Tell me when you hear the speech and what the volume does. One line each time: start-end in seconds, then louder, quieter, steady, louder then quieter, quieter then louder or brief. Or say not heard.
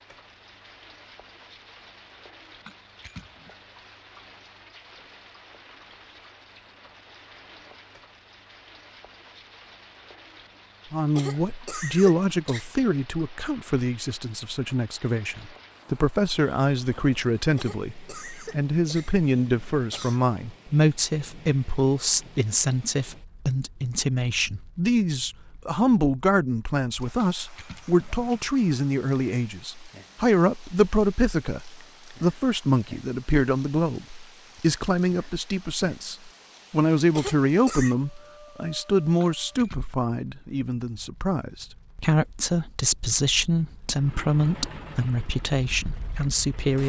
10.9-46.8 steady.